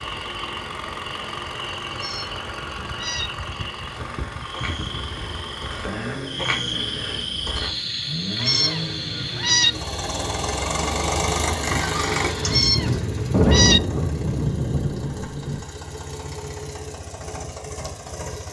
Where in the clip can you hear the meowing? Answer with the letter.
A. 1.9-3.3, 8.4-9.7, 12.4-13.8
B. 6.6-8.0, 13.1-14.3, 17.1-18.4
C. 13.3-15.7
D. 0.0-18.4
A.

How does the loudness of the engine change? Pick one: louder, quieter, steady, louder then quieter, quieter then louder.
louder then quieter.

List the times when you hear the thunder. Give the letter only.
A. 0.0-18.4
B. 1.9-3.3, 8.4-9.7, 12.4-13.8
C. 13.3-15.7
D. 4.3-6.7
C.